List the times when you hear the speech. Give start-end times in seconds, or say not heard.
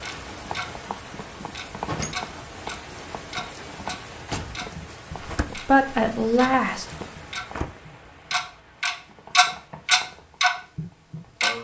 5.7-6.8.